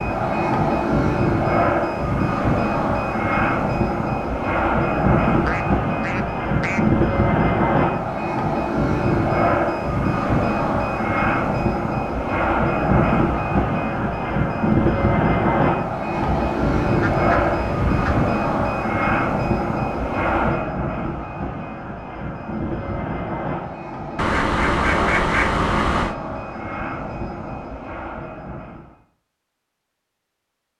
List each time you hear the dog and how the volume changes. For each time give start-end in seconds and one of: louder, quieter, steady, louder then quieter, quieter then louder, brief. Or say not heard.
not heard.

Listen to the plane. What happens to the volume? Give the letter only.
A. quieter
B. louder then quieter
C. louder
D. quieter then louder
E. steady
A.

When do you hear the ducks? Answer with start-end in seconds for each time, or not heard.
5.5-6.8, 16.1-18.1, 24.1-26.1.